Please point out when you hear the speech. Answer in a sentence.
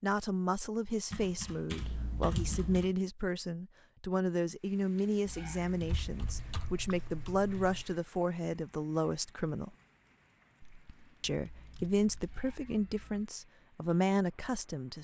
You can hear the speech from 0.0 to 9.7 s and from 11.2 to 14.9 s.